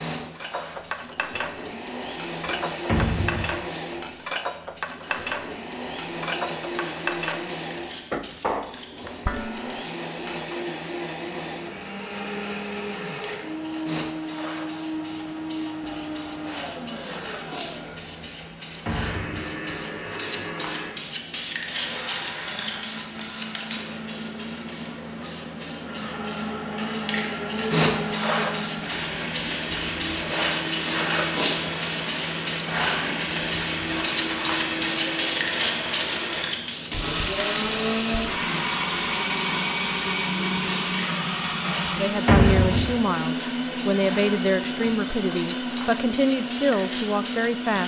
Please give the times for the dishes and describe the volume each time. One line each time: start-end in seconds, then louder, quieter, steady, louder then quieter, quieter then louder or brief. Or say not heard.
0.3-10.6 steady.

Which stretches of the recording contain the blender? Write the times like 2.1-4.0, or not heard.
0.0-47.8.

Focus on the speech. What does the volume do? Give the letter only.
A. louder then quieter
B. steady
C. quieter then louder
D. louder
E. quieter
B.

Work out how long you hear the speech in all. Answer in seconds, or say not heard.
6 s.